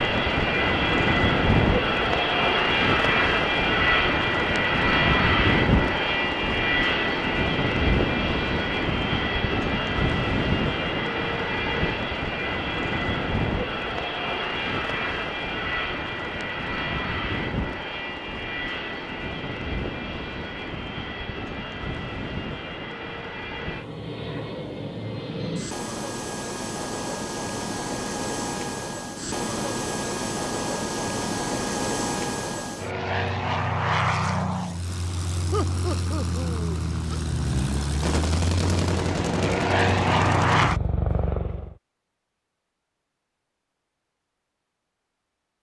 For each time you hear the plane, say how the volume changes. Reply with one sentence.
You can hear the plane from 0.0 to 41.8 s, getting quieter then louder.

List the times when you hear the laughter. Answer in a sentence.
The laughter can be heard from 35.5 to 37.2 s.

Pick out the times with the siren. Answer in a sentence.
The siren can't be heard in this clip.